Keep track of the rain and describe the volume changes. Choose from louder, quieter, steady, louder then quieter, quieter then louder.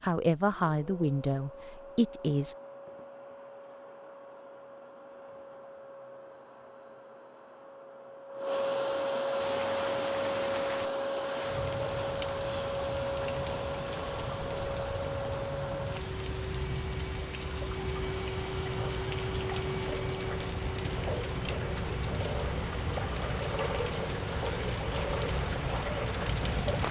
louder.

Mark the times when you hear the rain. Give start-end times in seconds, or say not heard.
9.3-26.8.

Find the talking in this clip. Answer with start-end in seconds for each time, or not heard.
0.0-2.5.